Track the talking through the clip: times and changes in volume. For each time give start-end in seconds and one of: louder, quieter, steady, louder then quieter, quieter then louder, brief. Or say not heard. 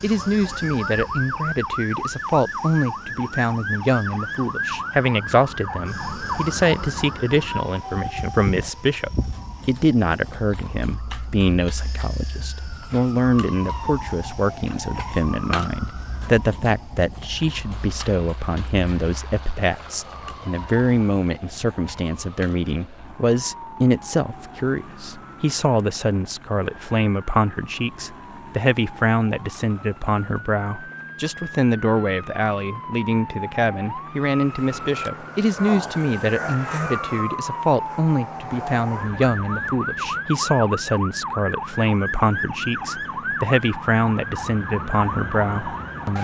0.0-46.1 steady.